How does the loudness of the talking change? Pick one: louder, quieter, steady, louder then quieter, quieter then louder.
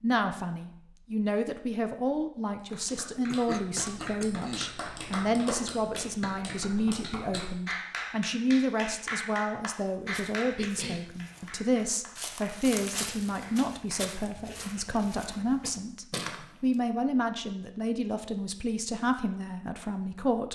steady.